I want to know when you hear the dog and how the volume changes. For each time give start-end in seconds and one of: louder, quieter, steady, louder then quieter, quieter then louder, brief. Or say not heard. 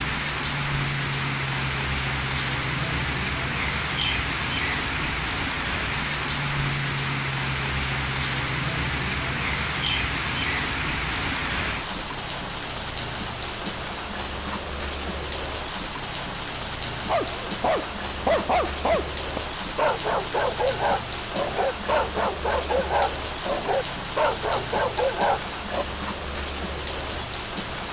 17.1-25.9 steady.